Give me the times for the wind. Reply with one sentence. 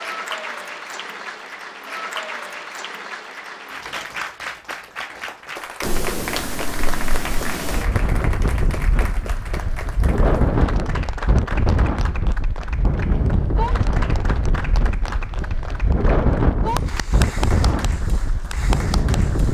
The wind can be heard from 5.8 to 19.4 s.